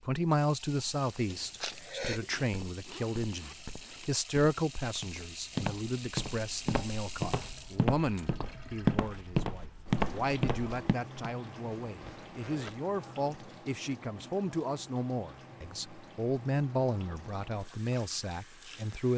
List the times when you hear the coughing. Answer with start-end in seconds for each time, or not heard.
1.5-2.2.